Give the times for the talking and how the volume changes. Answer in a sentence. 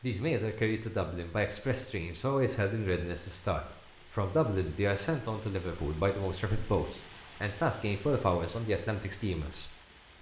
You can hear the talking from 0.0 to 10.1 s, at a steady volume.